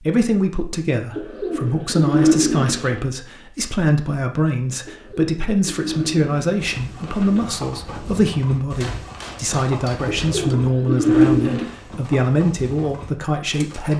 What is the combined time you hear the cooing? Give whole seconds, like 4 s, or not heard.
6 s.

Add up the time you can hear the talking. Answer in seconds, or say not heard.
14 s.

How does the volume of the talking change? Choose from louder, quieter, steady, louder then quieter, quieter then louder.
steady.